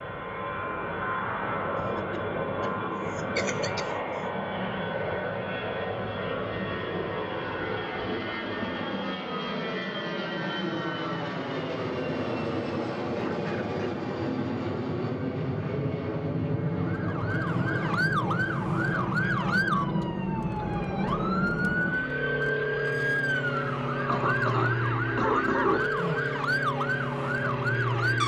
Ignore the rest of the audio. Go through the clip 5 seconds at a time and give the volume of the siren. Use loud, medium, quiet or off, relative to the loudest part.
off, off, off, loud, loud, loud.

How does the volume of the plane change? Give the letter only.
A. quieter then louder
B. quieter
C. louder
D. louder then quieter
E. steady
E.